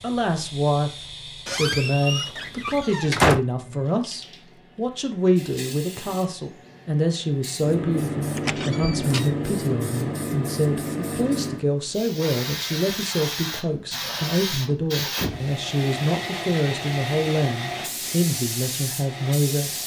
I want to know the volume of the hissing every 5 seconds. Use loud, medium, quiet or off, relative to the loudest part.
quiet, loud, loud, loud.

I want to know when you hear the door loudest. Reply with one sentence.
The volume of the door peaks at 3 seconds.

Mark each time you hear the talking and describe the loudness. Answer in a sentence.
The talking can be heard from 0.0 to 19.8 s, at a steady volume.